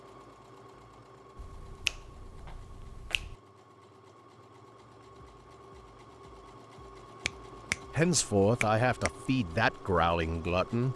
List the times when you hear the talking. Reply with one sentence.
The talking can be heard from 8.0 to 10.9 s.